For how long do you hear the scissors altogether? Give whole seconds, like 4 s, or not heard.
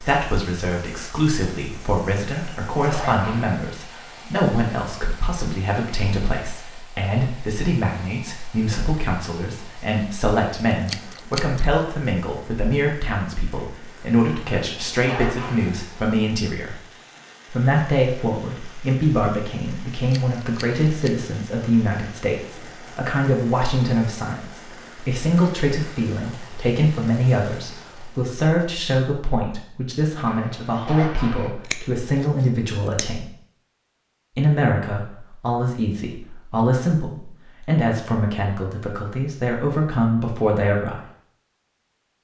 4 s.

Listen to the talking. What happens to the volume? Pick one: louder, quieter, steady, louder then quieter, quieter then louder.
steady.